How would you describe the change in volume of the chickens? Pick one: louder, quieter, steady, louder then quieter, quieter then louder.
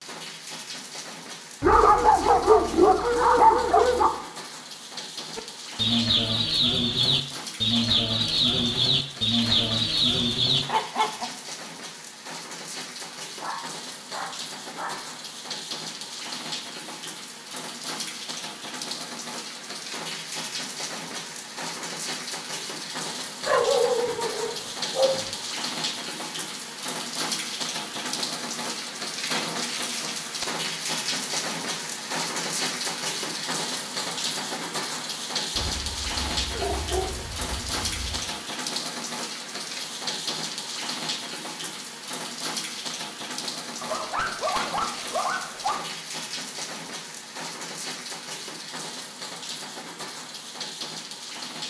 steady.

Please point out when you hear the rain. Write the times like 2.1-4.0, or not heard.
0.0-51.6.